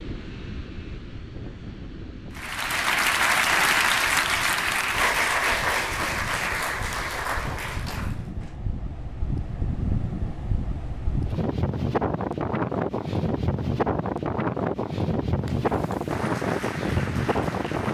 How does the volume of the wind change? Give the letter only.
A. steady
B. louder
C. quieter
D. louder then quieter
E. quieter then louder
B.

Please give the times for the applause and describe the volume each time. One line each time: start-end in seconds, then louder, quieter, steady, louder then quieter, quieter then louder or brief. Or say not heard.
2.4-8.6 quieter
15.4-17.8 brief.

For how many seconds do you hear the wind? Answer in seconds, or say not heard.
18 s.